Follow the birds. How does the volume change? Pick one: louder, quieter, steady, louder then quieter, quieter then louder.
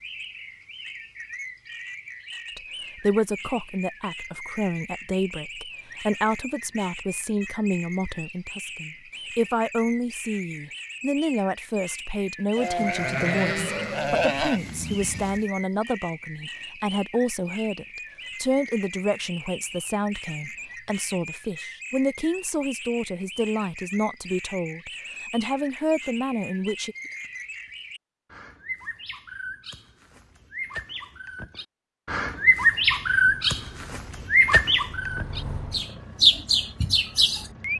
louder.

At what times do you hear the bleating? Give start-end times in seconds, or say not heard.
12.6-15.4.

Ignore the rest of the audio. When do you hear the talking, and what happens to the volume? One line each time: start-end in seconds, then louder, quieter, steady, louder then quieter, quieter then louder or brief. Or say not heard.
2.5-26.9 steady.